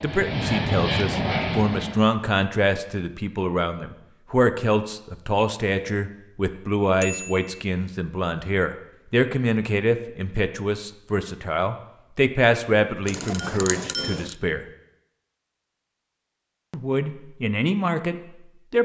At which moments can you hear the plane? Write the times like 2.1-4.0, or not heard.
0.0-2.0.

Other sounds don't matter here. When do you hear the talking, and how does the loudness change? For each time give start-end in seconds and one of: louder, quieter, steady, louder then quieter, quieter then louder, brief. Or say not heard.
0.0-14.7 steady
16.7-18.8 brief.